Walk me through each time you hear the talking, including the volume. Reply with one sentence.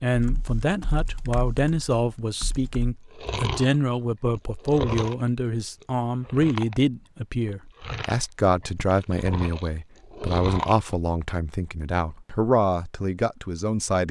The talking can be heard from 0.0 to 14.0 s, at a steady volume.